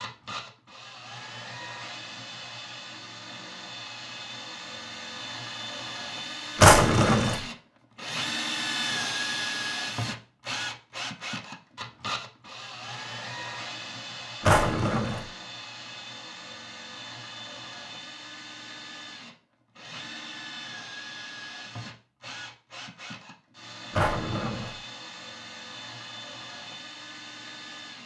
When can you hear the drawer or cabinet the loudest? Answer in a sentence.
The volume of the drawer or cabinet peaks at 7 seconds.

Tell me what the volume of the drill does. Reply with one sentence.
The loudness of the drill goes up, then down.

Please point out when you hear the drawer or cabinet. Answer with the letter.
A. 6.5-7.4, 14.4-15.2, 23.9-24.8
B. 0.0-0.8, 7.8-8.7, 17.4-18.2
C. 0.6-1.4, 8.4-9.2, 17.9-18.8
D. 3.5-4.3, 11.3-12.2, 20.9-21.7
A.